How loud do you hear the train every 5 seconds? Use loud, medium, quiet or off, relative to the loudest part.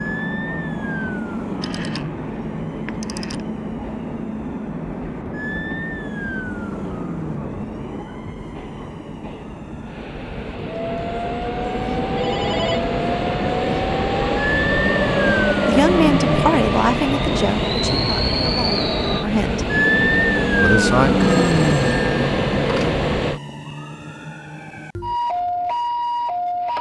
medium, medium, loud, loud, loud, off.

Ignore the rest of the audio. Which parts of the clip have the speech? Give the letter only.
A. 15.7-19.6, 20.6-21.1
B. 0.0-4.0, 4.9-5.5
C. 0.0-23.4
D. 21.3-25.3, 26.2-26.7
A.